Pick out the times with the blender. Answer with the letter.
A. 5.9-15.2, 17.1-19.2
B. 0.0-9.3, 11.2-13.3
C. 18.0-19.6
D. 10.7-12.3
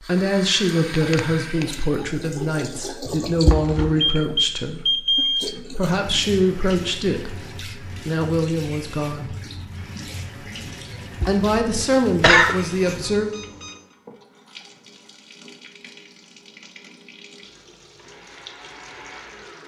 C.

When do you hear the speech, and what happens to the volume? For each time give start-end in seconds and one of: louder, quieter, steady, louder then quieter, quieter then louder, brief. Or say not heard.
0.0-9.3 steady
11.2-13.3 brief.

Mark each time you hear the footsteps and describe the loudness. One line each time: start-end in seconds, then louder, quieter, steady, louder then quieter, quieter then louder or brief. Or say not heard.
not heard.